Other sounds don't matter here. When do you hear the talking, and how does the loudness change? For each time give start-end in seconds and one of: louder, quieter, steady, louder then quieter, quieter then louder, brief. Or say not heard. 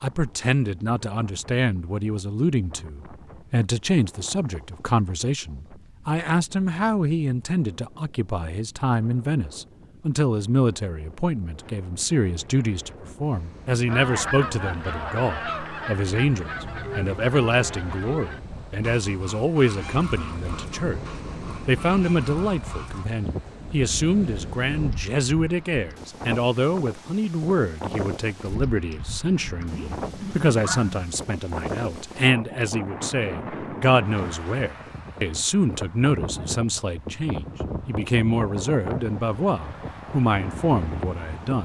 0.0-21.0 steady
21.6-41.6 steady.